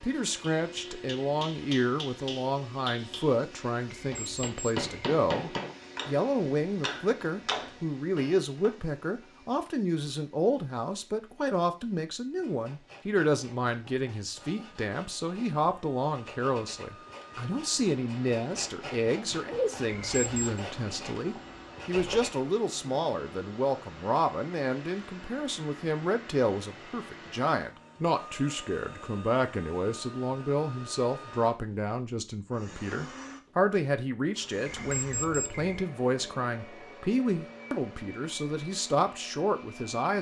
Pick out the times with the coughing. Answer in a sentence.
You can't hear the coughing here.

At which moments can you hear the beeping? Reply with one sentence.
The beeping can be heard from 4.0 to 5.0 s, from 19.9 to 20.6 s and from 34.6 to 35.9 s.